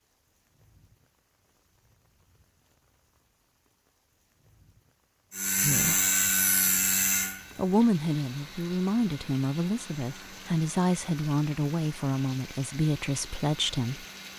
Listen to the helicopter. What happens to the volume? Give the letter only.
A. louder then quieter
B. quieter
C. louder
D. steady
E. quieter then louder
B.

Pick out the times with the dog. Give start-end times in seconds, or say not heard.
not heard.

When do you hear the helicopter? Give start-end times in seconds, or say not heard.
5.3-14.3.